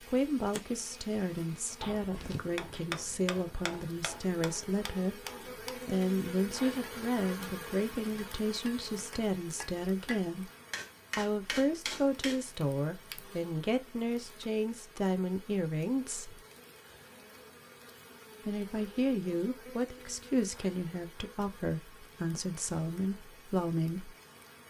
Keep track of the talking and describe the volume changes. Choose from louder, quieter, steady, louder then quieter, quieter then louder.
steady.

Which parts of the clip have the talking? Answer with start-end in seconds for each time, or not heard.
0.1-5.2, 5.8-10.5, 11.2-16.4, 18.4-24.1.